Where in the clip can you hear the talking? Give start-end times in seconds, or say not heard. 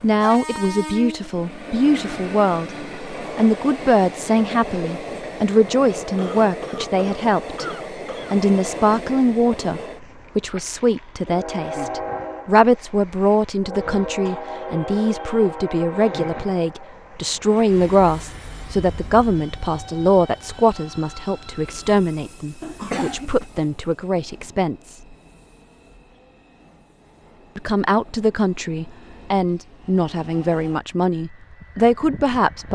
0.0-7.6, 8.3-24.9, 27.6-32.6.